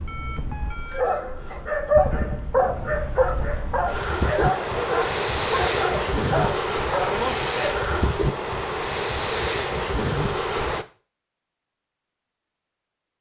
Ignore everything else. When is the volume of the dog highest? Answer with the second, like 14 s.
2 s.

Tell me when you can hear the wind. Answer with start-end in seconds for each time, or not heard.
0.0-10.8.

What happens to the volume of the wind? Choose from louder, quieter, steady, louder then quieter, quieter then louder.
louder.